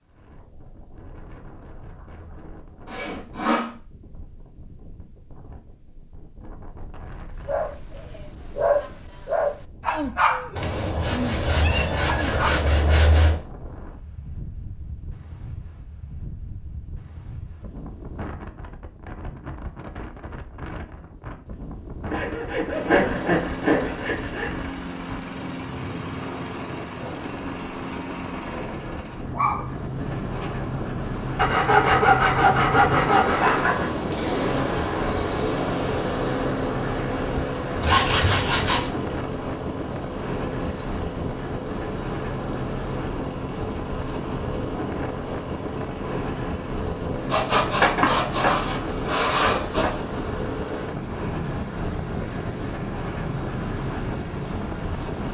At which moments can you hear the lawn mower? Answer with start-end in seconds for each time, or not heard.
22.7-55.2.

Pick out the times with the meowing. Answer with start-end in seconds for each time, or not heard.
11.4-12.6.